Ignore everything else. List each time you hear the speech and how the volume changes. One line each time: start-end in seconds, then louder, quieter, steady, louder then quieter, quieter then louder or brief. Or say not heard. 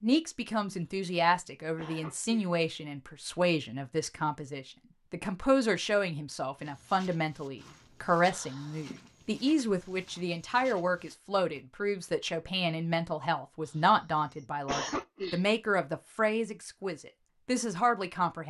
0.0-18.4 steady.